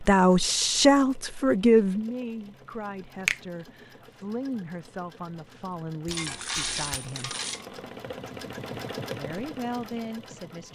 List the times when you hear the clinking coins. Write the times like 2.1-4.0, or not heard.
6.1-7.7.